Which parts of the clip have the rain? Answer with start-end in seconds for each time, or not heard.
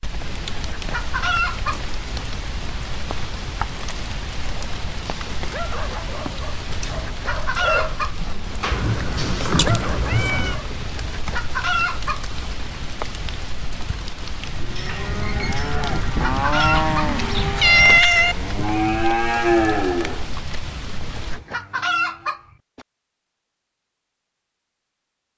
0.0-21.4.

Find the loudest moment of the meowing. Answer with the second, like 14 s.
18 s.